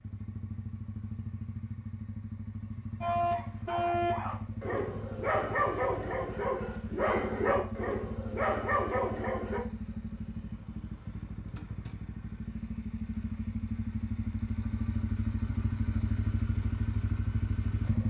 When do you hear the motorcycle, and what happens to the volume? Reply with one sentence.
The motorcycle can be heard from 0.0 to 18.0 s, getting louder.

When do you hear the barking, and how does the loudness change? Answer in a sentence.
The barking can be heard from 3.0 to 9.6 s, at a steady volume.